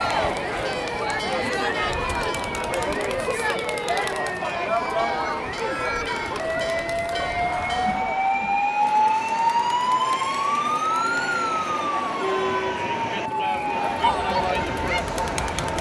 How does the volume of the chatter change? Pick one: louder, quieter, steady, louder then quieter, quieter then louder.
quieter then louder.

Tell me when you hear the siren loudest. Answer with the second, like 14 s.
9 s.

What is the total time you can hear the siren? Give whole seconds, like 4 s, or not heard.
16 s.